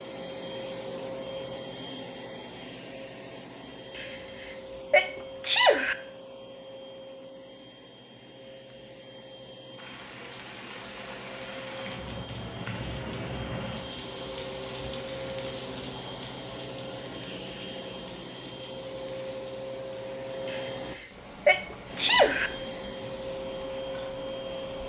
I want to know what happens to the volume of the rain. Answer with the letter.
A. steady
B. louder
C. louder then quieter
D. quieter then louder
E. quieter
E.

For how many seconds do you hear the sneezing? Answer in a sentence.
The sneezing can be heard for 4 seconds in total.